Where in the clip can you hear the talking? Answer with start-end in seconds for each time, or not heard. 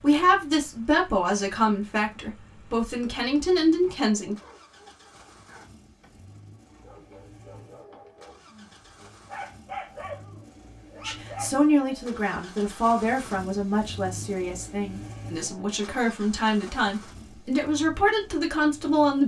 0.0-4.3, 11.1-19.2.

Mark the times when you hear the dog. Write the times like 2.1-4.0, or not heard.
4.2-11.7.